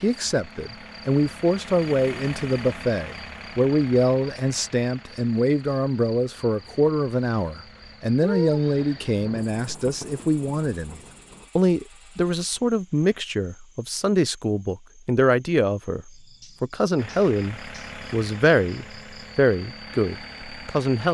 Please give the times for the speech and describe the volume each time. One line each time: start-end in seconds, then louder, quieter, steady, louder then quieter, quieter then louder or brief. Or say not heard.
0.0-21.0 steady.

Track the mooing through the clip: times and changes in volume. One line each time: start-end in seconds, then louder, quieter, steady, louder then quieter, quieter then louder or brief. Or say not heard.
not heard.